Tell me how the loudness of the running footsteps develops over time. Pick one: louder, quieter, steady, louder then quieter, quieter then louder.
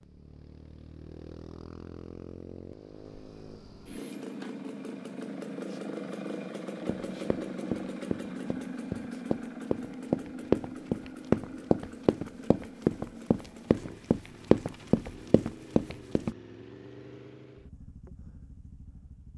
louder.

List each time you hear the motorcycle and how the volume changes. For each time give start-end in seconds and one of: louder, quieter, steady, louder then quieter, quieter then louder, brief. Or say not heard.
0.0-19.3 louder then quieter.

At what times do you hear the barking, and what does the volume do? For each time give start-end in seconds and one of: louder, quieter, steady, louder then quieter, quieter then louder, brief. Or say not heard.
not heard.